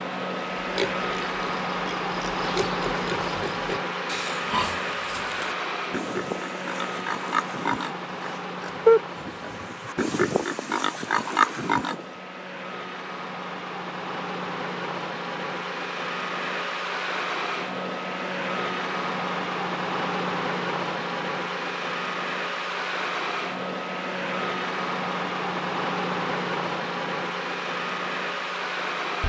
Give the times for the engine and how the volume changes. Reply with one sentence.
The engine can be heard from 0.0 to 29.2 s, getting quieter then louder.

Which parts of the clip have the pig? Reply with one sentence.
The pig can be heard from 0.6 to 12.0 s.